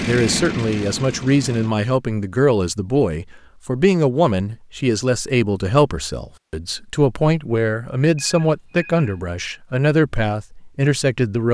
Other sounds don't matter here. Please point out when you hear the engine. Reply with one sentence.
You can hear the engine from 0.0 to 1.7 s.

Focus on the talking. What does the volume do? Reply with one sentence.
The loudness of the talking stays about the same.